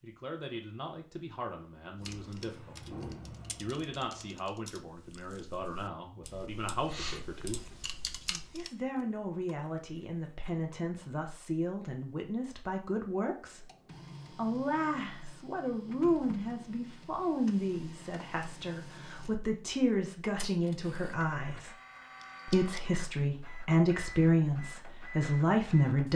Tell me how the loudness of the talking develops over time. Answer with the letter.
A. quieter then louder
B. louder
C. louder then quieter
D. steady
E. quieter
B.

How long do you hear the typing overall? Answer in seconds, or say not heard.
7 s.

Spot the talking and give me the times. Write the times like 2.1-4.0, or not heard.
0.0-7.7, 8.5-13.7, 14.3-21.8, 22.4-26.1.